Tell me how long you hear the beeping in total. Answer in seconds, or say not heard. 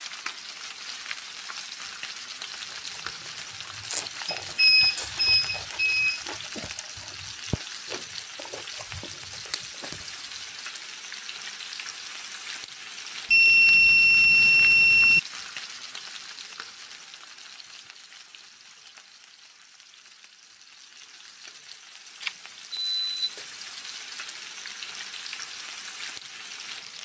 5 s.